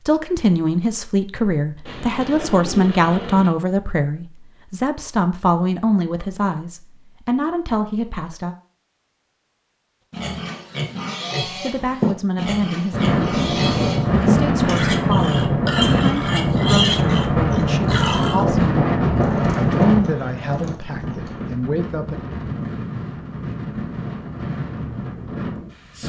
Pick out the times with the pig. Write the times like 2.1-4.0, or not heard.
10.1-18.4.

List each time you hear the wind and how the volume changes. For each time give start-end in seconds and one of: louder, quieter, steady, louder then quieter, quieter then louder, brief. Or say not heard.
12.9-26.0 quieter.